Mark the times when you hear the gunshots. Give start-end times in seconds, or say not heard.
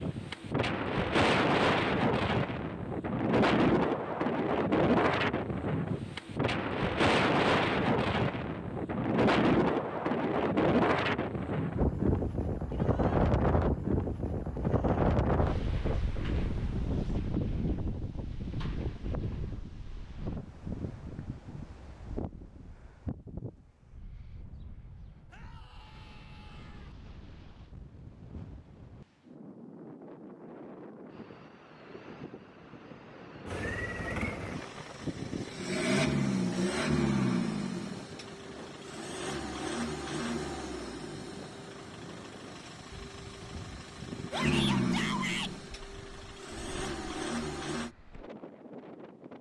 not heard.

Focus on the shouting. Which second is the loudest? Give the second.
45 s.